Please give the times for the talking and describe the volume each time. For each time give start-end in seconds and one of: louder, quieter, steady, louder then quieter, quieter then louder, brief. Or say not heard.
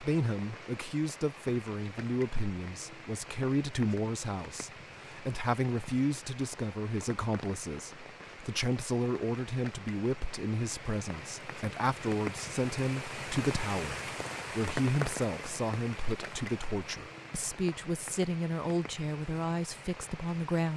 0.0-20.7 steady.